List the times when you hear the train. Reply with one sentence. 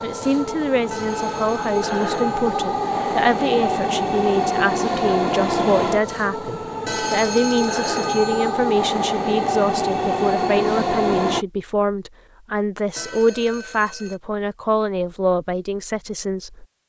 You can hear the train from 0.0 to 11.4 s.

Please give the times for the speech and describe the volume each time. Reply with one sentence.
You can hear the speech from 0.0 to 16.6 s, at a steady volume.